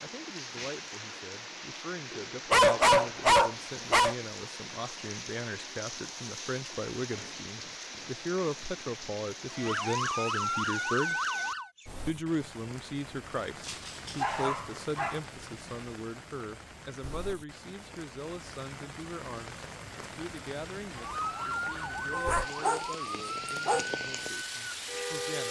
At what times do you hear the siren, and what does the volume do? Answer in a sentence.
You can hear the siren briefly from 9.5 to 11.7 s; and from 20.9 to 25.4 s, getting quieter.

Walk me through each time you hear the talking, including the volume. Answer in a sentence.
You can hear the talking from 0.0 to 11.2 s, getting louder; and from 12.1 to 25.4 s, getting quieter.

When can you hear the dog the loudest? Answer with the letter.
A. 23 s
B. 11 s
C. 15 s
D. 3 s
D.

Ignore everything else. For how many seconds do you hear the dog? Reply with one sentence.
You can hear the dog for 4 seconds altogether.